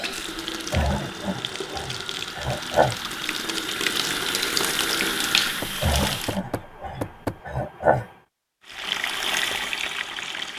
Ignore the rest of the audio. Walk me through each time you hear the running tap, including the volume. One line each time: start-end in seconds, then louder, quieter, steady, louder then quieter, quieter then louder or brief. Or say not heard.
0.0-6.4 louder
8.6-10.5 brief.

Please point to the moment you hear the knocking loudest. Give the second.
7 s.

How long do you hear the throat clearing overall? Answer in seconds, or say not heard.
5 s.